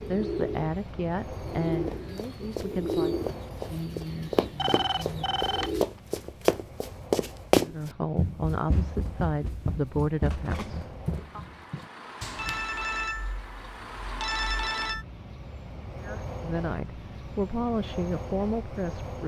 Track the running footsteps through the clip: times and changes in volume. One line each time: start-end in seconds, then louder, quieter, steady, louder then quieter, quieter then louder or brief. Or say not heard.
1.9-12.6 louder then quieter.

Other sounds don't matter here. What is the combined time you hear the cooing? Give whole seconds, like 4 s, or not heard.
6 s.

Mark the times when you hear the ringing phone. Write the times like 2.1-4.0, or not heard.
4.5-5.8, 12.3-15.1.